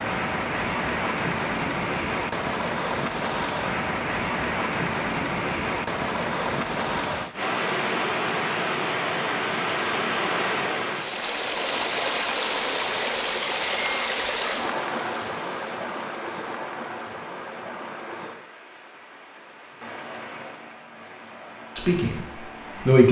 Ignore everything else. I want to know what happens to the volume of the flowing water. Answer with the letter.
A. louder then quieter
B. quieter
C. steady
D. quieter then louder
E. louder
B.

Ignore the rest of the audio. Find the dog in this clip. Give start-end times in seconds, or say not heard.
not heard.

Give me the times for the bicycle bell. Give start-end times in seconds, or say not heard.
13.6-14.3.